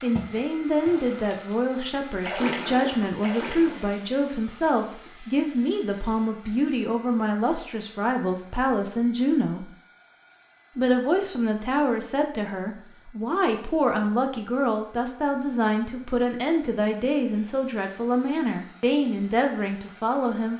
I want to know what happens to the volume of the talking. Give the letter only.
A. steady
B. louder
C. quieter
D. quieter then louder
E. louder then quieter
A.